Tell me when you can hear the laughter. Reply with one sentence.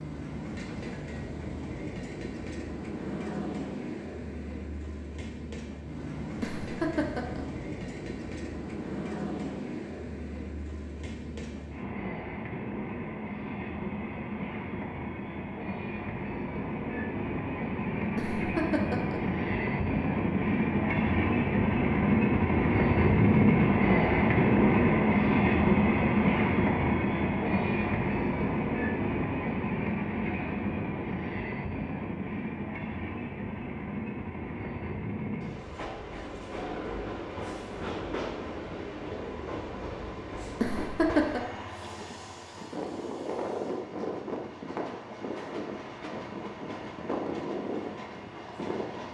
The laughter can be heard from 6.4 to 7.5 s, from 18.1 to 19.2 s and from 40.6 to 41.4 s.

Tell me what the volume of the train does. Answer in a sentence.
The loudness of the train goes up, then down.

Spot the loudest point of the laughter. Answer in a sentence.
The loudest moment of the laughter is at 41 seconds.